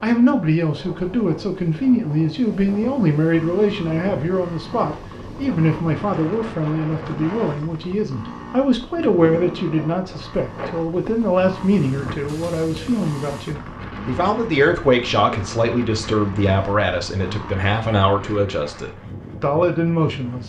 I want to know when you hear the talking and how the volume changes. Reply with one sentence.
The talking can be heard from 0.0 to 20.4 s, at a steady volume.